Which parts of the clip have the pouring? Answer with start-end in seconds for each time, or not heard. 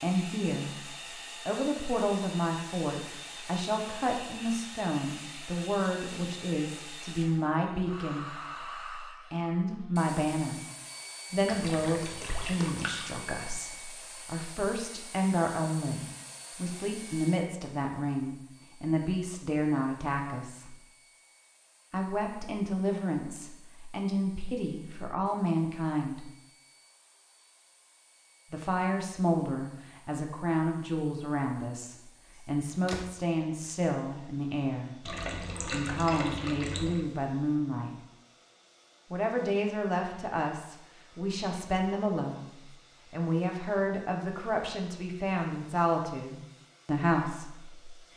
11.4-13.1, 35.0-37.0.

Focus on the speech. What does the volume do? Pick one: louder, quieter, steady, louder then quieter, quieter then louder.
steady.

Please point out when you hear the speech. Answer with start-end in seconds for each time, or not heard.
0.0-10.6, 11.3-20.8, 21.9-26.3, 28.5-38.0, 39.1-48.1.